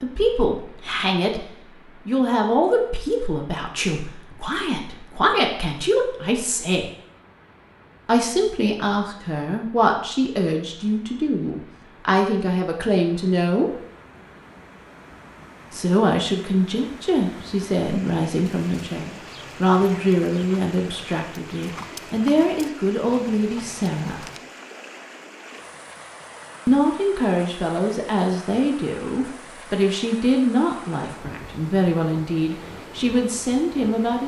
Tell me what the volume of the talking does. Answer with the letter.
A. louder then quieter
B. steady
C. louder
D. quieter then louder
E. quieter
B.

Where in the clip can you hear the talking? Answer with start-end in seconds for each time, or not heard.
0.0-6.9, 8.1-13.7, 15.7-24.2, 26.6-34.2.